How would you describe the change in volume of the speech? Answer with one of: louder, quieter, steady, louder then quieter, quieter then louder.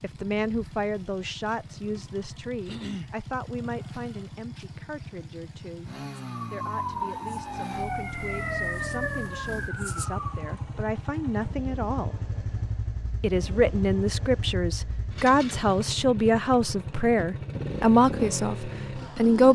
quieter then louder.